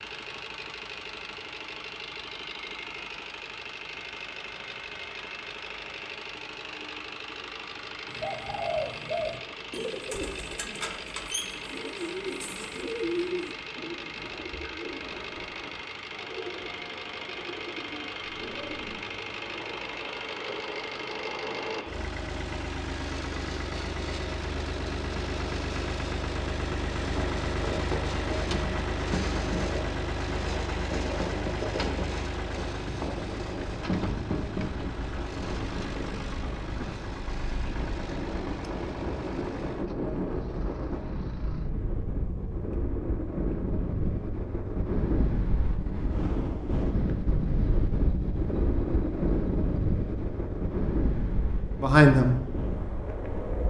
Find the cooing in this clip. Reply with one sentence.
The cooing can be heard from 8.1 to 19.0 s.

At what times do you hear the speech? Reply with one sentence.
You can hear the speech from 51.8 to 52.4 s.